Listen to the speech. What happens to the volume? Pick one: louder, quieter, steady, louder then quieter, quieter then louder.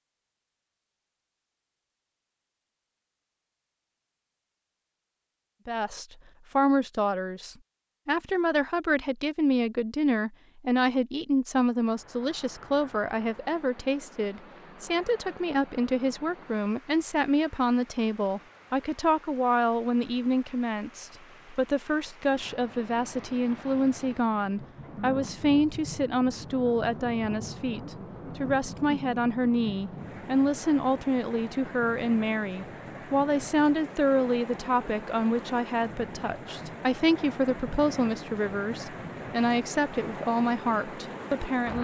steady.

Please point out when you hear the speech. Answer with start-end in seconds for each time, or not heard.
5.7-41.7.